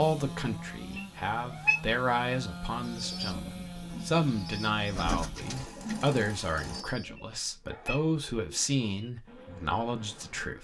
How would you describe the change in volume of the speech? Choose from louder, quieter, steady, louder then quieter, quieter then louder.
steady.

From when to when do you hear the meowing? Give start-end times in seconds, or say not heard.
0.9-1.8, 7.2-8.0.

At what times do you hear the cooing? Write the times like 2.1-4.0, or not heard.
2.9-10.5.